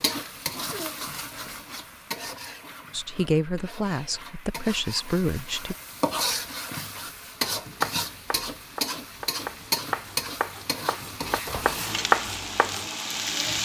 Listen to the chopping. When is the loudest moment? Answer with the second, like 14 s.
12 s.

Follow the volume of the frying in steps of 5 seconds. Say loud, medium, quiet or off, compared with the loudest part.
medium, loud, loud.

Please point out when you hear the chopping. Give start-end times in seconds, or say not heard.
7.5-12.8.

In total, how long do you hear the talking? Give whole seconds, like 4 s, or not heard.
3 s.